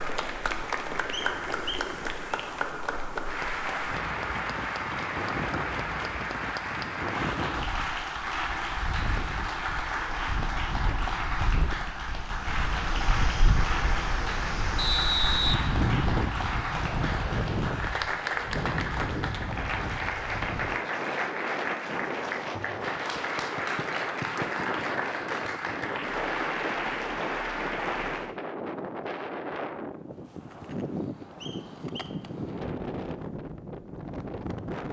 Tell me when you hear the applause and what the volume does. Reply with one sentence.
The applause can be heard from 0.0 to 28.4 s, at a steady volume.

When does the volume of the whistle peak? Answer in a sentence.
The loudest moment of the whistle is at 15 seconds.